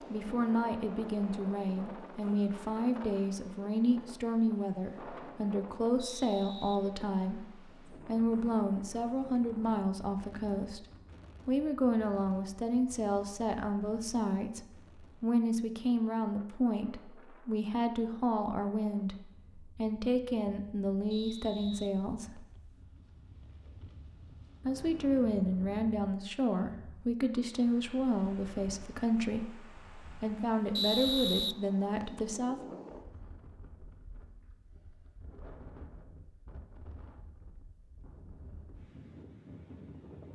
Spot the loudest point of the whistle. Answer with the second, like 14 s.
31 s.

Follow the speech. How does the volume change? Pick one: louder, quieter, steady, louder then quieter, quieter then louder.
steady.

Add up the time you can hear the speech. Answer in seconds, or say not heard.
30 s.